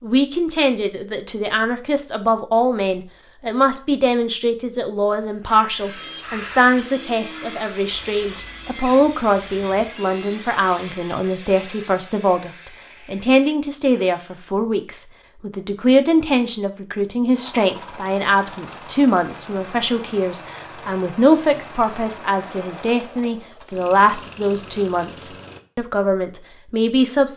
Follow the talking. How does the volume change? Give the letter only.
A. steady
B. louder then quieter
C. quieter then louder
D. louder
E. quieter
A.